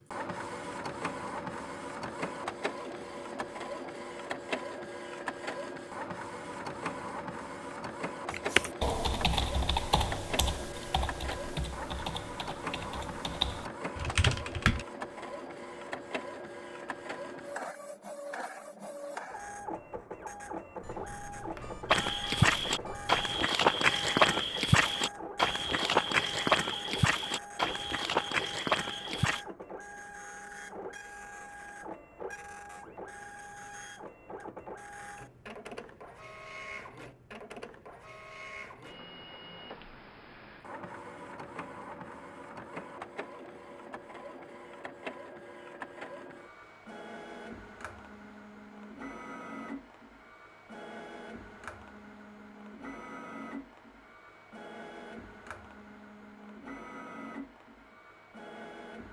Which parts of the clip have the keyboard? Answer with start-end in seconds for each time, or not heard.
8.3-14.8.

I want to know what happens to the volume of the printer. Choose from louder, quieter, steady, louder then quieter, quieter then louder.
quieter.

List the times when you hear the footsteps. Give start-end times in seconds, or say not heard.
21.9-29.4.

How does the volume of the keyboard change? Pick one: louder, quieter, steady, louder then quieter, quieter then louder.
quieter then louder.